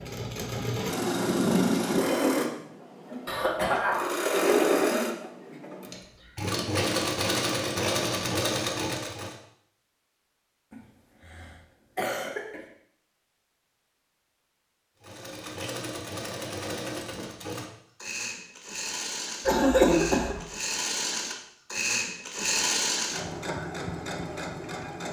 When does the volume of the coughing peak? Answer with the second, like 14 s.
20 s.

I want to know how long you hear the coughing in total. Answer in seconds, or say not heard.
4 s.